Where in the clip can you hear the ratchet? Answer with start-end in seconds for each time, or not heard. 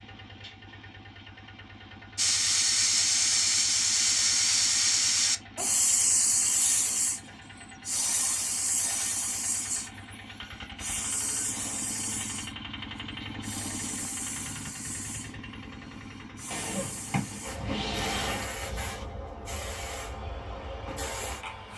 not heard.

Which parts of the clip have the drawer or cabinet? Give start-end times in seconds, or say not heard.
16.5-18.4.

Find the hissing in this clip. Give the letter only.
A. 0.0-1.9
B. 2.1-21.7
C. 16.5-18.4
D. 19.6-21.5
B.